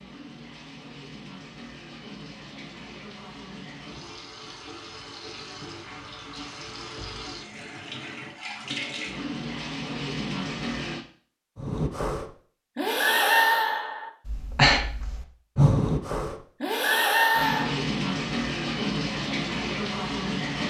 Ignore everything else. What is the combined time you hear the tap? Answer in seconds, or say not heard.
14 s.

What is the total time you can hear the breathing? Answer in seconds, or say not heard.
6 s.